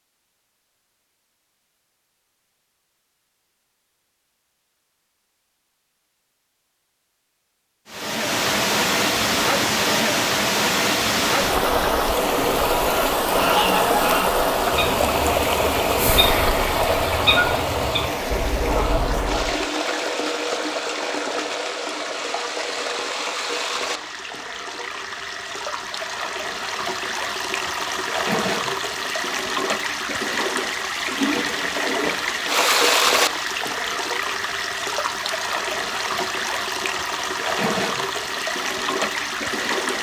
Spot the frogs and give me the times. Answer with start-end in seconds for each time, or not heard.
not heard.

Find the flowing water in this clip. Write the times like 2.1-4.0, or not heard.
7.9-39.9.